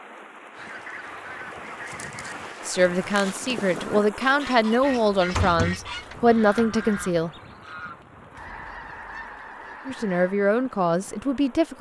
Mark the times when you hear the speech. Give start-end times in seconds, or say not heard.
2.6-7.3, 9.8-11.7.